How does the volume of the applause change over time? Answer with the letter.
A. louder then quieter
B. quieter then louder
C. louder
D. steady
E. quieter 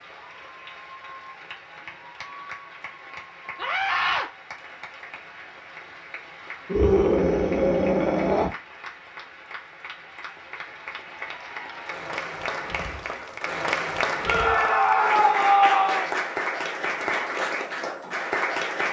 C.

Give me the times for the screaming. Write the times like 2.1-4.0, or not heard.
3.5-4.2, 6.7-8.5, 14.2-16.1.